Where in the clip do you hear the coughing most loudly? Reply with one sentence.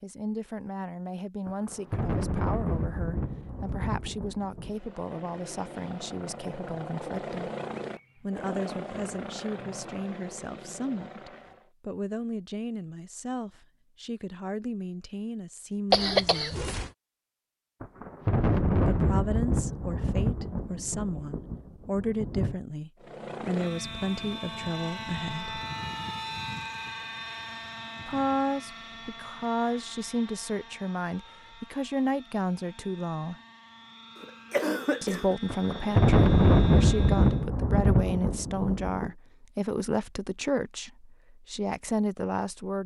The volume of the coughing peaks at 16 seconds.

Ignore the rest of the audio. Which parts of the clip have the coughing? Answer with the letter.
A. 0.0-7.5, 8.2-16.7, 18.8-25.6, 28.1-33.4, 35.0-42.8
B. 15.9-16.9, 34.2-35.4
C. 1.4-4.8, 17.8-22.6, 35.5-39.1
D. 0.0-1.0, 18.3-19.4
B.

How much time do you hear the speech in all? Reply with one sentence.
You can hear the speech for 36 seconds altogether.